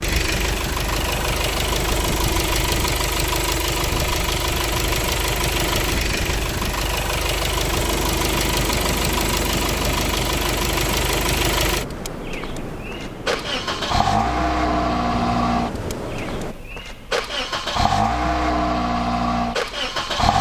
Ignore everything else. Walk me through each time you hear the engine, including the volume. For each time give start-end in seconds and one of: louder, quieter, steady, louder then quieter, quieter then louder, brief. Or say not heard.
0.0-20.3 steady.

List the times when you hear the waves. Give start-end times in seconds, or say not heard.
0.0-16.6.